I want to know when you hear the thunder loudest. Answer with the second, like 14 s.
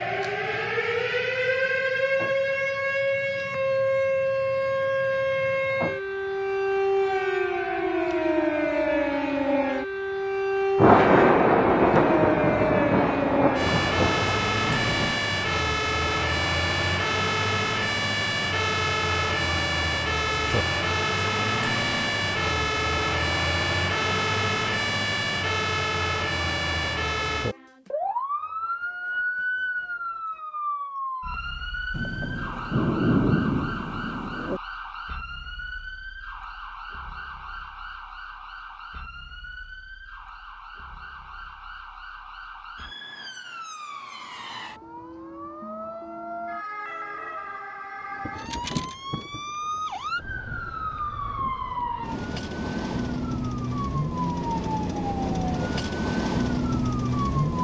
11 s.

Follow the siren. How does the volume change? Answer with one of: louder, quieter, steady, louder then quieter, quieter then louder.
quieter then louder.